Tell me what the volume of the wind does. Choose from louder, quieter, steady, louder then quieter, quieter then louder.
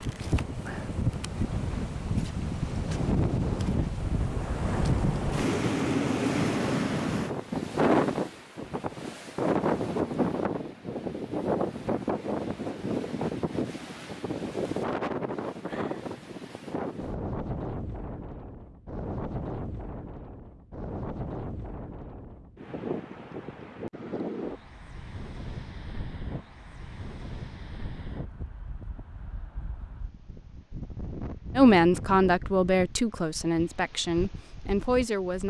quieter.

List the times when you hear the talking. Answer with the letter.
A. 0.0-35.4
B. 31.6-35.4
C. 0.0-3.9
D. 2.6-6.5
B.